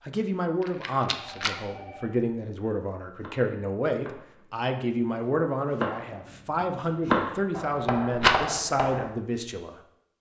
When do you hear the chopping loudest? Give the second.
7 s.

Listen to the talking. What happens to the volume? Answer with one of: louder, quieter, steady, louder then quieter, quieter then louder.
steady.